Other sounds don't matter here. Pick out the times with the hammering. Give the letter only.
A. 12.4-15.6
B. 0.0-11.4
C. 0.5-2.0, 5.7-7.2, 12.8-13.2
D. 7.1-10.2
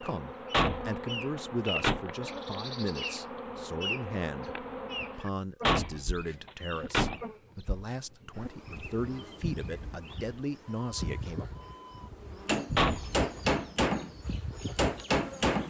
A.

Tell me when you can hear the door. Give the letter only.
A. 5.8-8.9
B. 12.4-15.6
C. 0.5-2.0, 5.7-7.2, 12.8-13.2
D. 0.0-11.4
C.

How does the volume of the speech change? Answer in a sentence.
The loudness of the speech goes down, then up.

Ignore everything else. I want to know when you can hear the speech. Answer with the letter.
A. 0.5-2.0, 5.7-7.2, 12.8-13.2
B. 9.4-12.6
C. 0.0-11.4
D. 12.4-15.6
C.